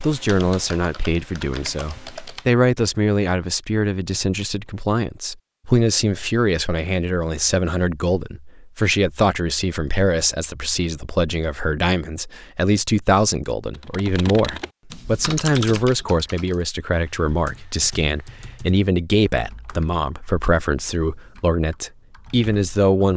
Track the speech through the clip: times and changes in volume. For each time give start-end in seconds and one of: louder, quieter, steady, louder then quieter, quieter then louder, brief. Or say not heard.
0.0-23.1 steady.